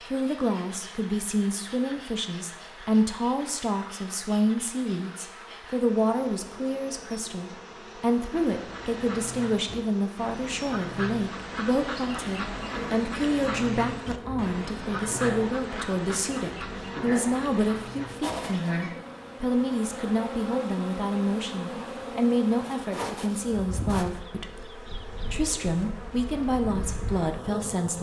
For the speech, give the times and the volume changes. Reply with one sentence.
You can hear the speech from 0.1 to 27.9 s, at a steady volume.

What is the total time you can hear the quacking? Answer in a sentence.
You can hear the quacking for 11 seconds altogether.